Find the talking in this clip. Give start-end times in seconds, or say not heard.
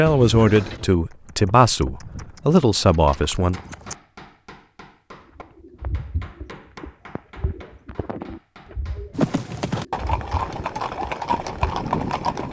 0.0-3.5.